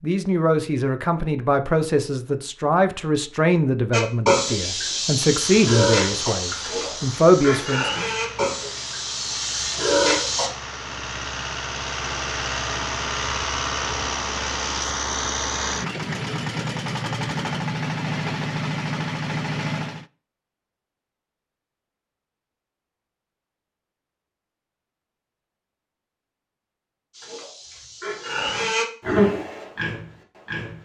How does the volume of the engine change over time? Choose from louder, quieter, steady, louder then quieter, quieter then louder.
louder.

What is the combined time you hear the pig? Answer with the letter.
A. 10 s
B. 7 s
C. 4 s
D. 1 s
A.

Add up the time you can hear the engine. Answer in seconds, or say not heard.
15 s.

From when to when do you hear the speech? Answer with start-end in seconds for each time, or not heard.
0.0-8.1.